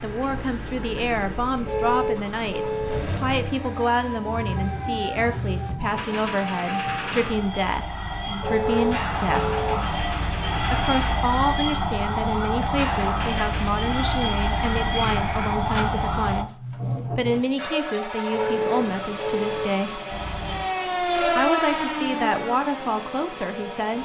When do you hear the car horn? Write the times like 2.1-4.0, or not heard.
1.6-3.0, 8.4-9.8, 18.3-19.6.